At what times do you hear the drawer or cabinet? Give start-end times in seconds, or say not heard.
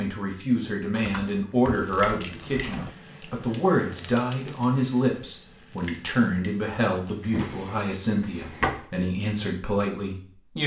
0.9-3.0, 7.3-8.8.